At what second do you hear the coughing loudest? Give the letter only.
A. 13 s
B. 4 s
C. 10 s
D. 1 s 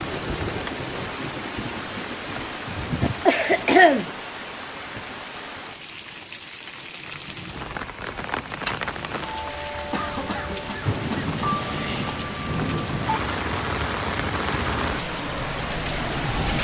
B.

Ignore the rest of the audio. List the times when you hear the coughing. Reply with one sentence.
You can hear the coughing from 2.8 to 4.1 s and from 8.9 to 11.4 s.